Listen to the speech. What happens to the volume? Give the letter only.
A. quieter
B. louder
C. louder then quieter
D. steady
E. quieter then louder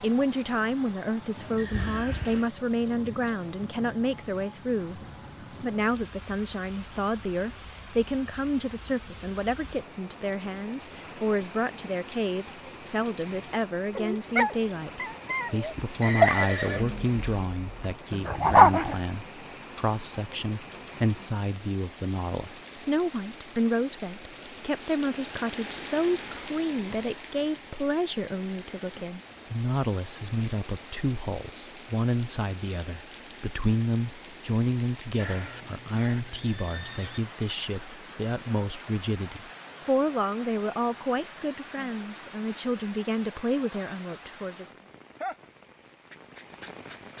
D.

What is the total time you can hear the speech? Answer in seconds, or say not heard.
44 s.